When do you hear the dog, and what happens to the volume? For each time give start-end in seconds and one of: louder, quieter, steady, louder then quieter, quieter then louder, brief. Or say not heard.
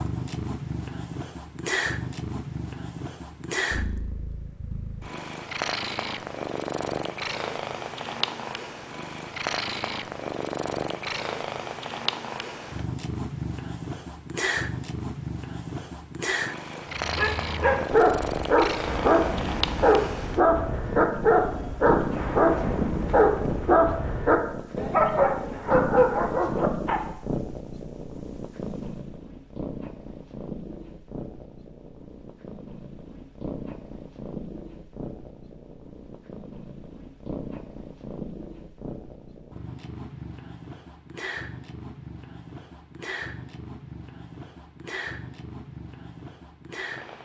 16.9-27.0 steady.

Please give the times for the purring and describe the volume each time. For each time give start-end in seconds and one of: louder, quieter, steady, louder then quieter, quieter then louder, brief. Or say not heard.
0.0-47.2 quieter.